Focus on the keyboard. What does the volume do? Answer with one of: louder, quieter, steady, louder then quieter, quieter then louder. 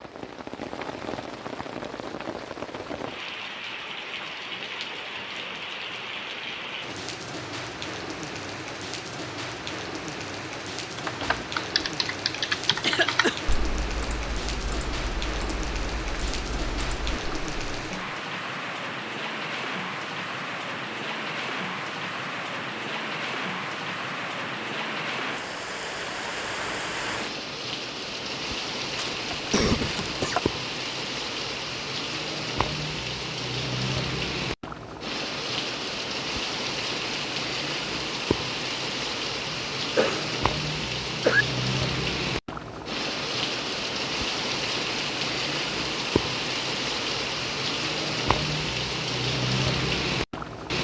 quieter.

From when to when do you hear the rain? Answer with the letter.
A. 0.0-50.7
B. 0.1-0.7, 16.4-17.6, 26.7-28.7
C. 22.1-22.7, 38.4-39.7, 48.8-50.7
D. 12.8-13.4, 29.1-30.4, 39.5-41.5
A.